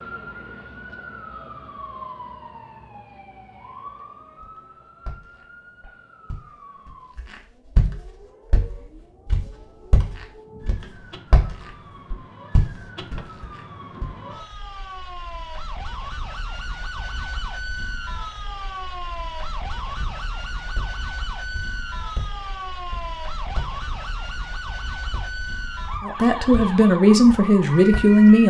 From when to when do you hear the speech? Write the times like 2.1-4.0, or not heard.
26.0-28.4.